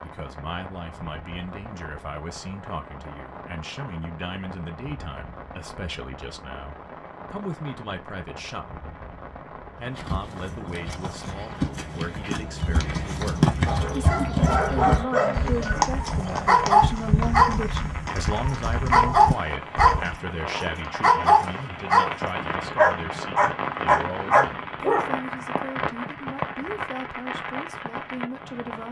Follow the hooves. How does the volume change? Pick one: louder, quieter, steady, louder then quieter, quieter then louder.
louder then quieter.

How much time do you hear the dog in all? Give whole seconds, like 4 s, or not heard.
10 s.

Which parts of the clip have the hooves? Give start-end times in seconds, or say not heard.
9.8-20.1.